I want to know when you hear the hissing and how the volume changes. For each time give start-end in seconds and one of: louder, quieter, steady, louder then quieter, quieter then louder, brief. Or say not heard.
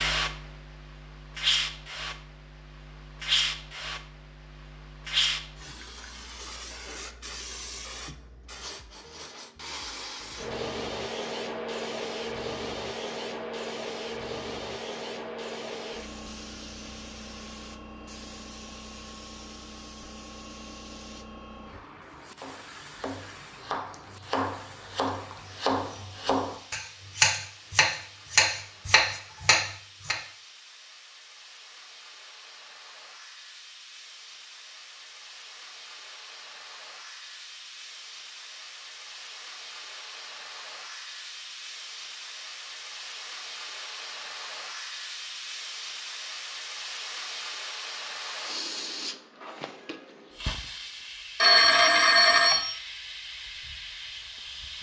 0.0-54.7 quieter then louder.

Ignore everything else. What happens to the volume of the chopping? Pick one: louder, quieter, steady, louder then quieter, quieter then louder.
louder.